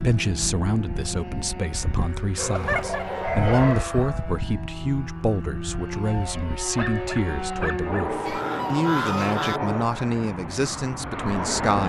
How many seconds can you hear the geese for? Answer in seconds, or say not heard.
3 s.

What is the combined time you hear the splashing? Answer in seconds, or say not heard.
not heard.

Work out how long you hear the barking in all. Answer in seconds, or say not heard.
3 s.